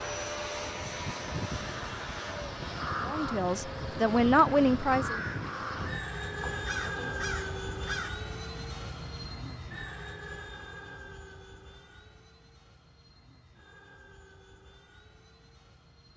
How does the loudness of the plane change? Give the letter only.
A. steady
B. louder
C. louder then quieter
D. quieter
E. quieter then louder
D.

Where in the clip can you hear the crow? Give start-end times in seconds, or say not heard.
2.8-8.1.